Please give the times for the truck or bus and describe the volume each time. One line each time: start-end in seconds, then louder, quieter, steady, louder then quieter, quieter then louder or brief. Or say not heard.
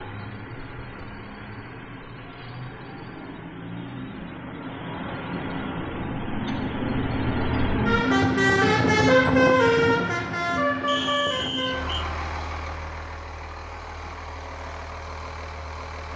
0.0-16.1 louder then quieter.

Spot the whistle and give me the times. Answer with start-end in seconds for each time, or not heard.
10.8-12.1.